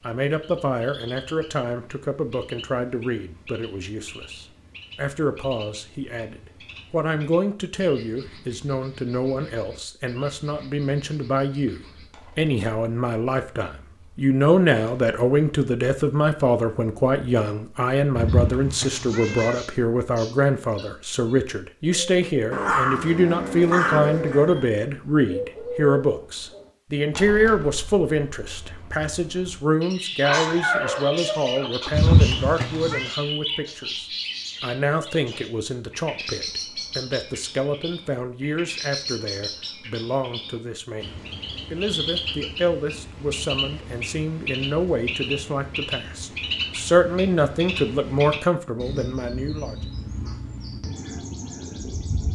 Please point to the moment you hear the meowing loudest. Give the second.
32 s.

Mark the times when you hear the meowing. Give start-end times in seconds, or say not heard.
18.1-19.6, 31.9-33.1.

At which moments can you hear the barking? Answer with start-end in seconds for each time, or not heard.
22.5-24.6, 30.2-32.2.